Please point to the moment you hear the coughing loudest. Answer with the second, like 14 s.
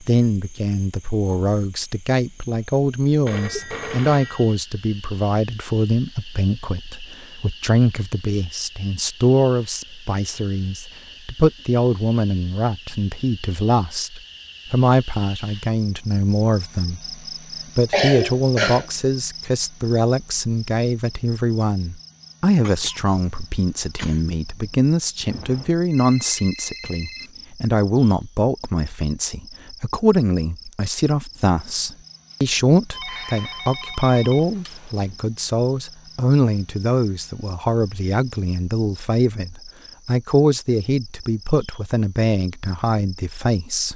18 s.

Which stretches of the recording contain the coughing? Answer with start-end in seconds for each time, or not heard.
17.9-18.9, 22.6-24.2.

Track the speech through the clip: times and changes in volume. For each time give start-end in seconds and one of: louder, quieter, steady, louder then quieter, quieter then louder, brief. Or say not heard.
0.0-17.1 steady
17.8-43.9 steady.